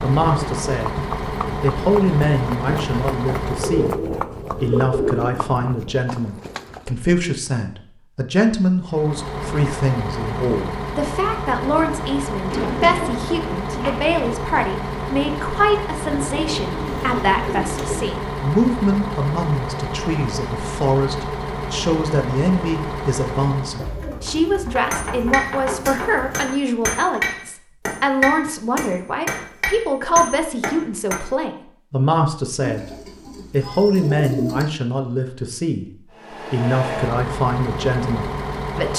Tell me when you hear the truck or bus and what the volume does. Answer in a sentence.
The truck or bus can be heard from 0.0 to 4.0 s, at a steady volume; from 8.8 to 24.0 s, at a steady volume; and briefly from 36.1 to 38.9 s.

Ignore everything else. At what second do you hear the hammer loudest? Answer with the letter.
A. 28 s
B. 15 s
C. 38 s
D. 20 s
A.